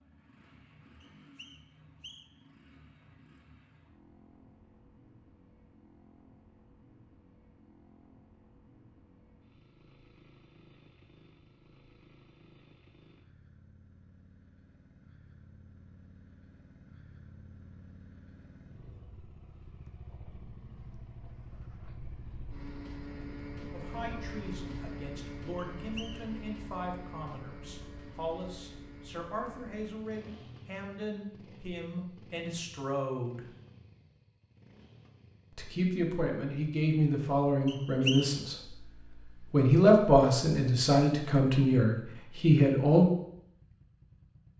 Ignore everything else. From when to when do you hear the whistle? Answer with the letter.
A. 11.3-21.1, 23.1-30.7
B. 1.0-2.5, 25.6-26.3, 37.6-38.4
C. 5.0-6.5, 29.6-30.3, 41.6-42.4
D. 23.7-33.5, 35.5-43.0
B.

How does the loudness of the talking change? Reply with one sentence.
The volume of the talking goes up.